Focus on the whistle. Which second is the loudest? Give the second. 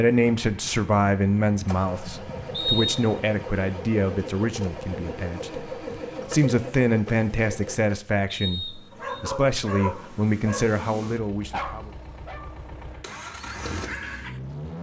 3 s.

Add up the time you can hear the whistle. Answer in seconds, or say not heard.
2 s.